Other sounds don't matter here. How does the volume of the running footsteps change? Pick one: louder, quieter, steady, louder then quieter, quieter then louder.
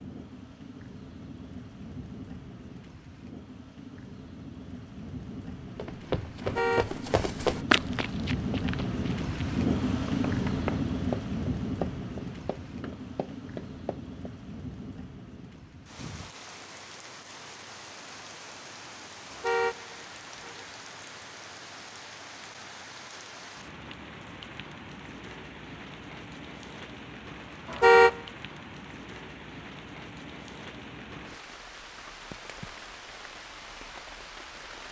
quieter.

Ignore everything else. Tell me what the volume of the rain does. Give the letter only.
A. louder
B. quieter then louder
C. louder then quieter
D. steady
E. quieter
C.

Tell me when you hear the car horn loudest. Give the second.
28 s.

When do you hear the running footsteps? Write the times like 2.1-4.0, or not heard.
5.7-14.3.